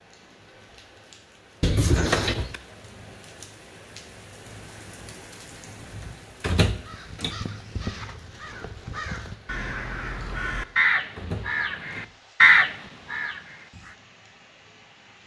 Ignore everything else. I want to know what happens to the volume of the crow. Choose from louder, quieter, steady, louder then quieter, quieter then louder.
louder.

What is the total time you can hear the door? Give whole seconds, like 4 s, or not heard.
3 s.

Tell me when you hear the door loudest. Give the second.
2 s.